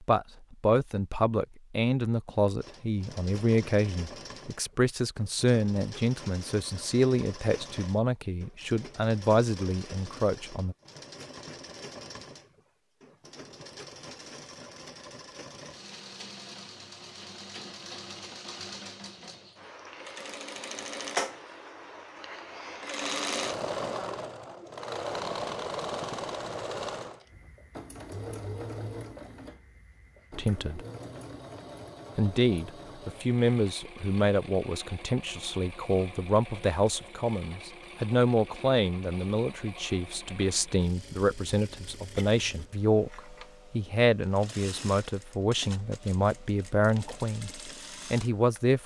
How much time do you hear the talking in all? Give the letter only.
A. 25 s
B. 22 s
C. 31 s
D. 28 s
D.